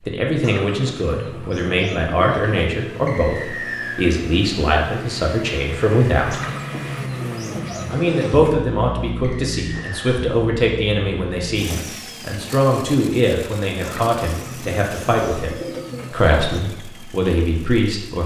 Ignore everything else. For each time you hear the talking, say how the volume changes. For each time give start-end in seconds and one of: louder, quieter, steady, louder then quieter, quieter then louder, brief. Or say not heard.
0.1-6.4 steady
7.9-18.2 steady.